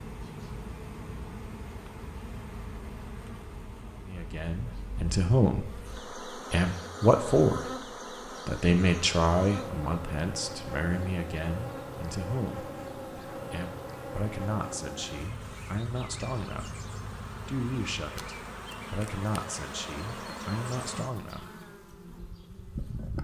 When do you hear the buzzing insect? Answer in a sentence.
You can hear the buzzing insect from 0.0 to 23.1 s.